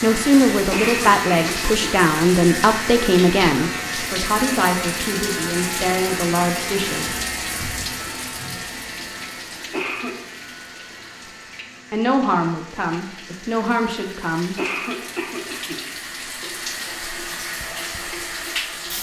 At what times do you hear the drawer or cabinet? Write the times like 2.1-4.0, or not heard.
not heard.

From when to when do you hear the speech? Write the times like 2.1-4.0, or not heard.
0.0-7.2, 11.9-14.6.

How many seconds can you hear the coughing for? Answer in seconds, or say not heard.
3 s.